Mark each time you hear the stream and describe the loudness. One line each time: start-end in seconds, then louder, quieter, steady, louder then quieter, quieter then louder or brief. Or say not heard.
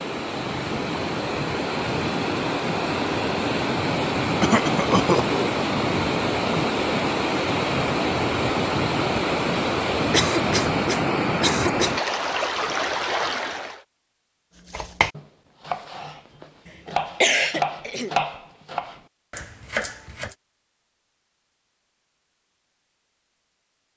0.0-13.8 steady.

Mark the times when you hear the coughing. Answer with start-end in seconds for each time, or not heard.
4.4-5.4, 10.1-11.9, 16.6-18.1.